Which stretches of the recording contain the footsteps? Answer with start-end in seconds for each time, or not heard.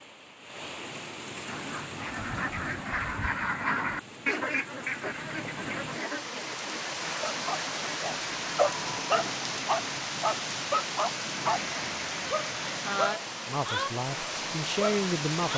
not heard.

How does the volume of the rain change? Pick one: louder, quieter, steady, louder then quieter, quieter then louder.
louder.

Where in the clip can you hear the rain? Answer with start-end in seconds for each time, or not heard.
0.0-15.5.